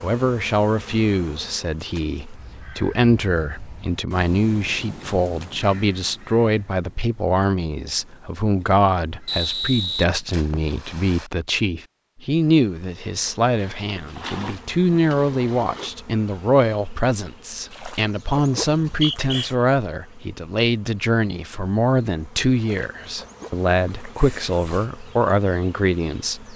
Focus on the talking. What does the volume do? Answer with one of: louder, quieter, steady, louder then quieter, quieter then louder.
steady.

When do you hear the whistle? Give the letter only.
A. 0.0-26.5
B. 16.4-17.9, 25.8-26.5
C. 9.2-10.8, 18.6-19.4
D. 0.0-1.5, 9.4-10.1
C.